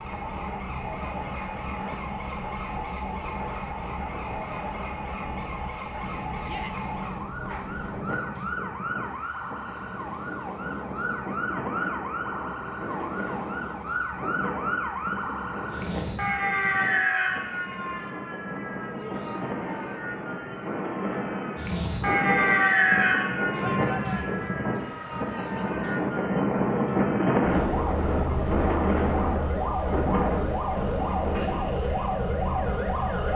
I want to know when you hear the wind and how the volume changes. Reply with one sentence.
The wind can be heard from 0.0 to 33.3 s, getting louder.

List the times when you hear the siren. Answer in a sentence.
You can hear the siren from 0.0 to 33.3 s.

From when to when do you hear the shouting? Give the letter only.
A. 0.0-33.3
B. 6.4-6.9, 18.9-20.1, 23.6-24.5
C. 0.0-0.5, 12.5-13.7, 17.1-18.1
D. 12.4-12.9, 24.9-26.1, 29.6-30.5
B.